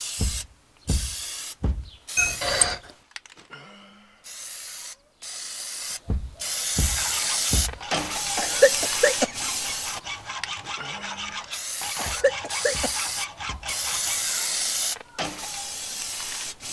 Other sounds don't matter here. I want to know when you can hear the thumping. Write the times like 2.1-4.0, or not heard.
0.1-1.9, 6.0-7.8, 12.0-13.8.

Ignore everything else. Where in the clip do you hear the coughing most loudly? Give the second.
9 s.